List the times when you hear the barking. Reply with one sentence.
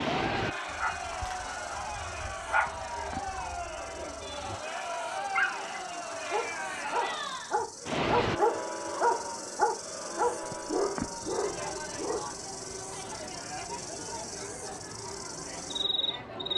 You can hear the barking from 0.7 to 12.2 s.